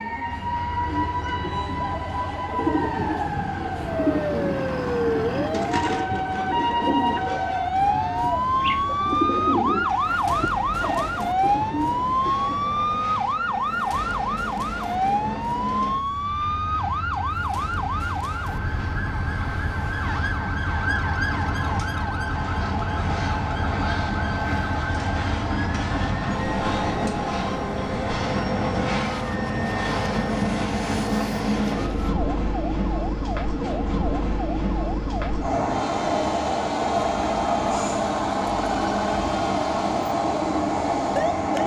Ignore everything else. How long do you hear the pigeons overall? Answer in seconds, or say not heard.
12 s.